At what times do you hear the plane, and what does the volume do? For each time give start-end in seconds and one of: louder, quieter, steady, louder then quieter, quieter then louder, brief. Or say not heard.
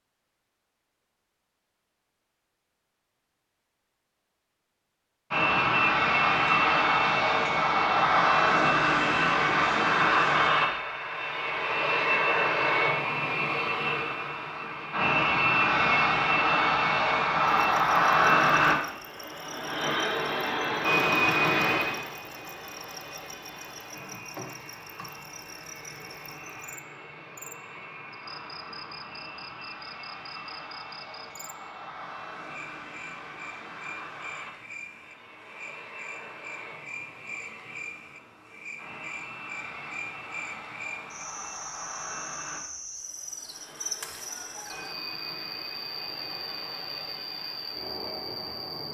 5.3-48.8 quieter.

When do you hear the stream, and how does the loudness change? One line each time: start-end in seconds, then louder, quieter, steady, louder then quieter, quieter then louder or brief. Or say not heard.
not heard.